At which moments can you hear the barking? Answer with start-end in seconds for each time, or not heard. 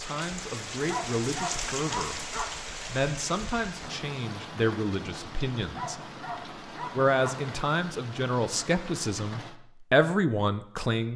0.8-2.5, 5.8-7.4.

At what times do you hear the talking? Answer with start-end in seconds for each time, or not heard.
0.0-6.0, 7.0-11.1.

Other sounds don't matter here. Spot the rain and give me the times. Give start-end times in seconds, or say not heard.
0.0-9.6.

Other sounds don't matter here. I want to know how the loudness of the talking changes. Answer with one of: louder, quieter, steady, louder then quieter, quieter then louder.
louder.